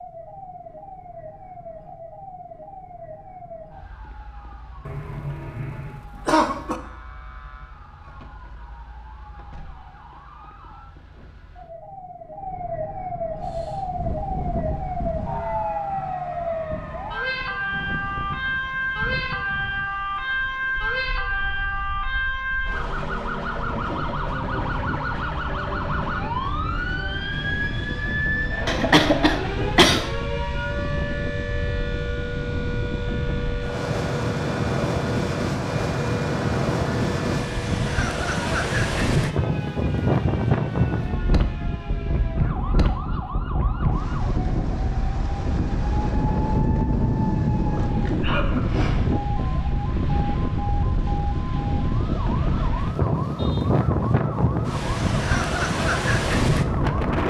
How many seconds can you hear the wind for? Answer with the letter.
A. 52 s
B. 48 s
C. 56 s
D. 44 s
D.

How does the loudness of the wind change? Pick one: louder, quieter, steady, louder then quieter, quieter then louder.
louder.